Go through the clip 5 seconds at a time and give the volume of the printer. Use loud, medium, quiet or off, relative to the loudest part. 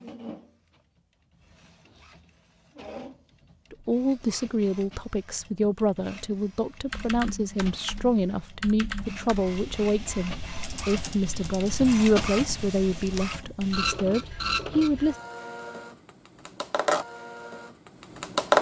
quiet, quiet, medium, loud.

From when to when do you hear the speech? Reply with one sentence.
You can hear the speech from 3.7 to 15.2 s.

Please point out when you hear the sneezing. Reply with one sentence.
The sneezing can't be heard in this clip.